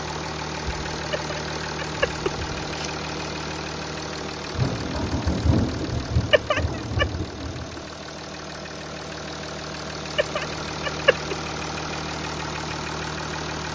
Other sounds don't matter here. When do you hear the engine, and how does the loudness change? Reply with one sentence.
The engine can be heard from 0.0 to 13.7 s, getting quieter then louder.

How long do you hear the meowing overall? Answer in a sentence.
The meowing can be heard for 4 seconds in total.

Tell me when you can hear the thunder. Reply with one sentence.
You can hear the thunder from 4.5 to 7.8 s.